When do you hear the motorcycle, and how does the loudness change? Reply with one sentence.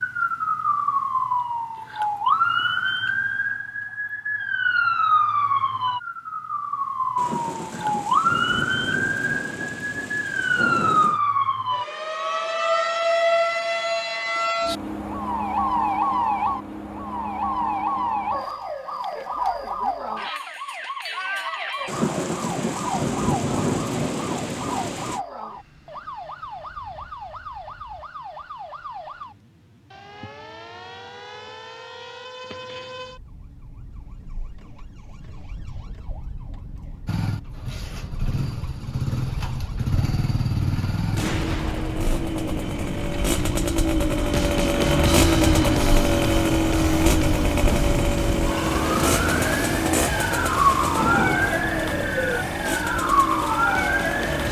You can hear the motorcycle from 37.0 to 54.4 s, getting louder then quieter.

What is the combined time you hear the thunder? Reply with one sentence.
You can hear the thunder for 11 seconds altogether.